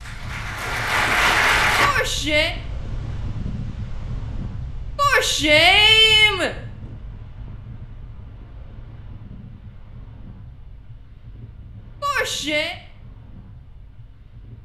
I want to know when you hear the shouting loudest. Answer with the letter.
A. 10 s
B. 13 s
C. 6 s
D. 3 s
C.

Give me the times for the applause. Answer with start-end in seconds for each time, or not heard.
0.0-1.9.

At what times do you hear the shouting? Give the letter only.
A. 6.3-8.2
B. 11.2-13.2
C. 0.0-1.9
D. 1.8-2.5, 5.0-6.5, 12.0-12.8
D.